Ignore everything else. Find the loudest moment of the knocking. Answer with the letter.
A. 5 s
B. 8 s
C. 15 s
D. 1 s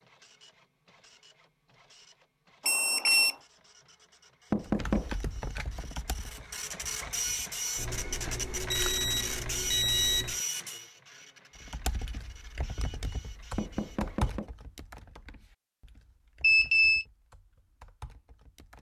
A.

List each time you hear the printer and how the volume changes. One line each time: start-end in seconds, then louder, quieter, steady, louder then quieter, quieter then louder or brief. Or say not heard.
0.0-14.4 louder then quieter.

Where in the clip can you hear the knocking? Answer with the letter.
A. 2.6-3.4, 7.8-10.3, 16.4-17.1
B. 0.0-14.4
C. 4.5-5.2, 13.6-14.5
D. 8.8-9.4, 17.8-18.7
C.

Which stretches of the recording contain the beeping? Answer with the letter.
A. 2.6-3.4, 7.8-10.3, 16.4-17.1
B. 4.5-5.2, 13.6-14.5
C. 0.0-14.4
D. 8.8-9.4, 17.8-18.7
A.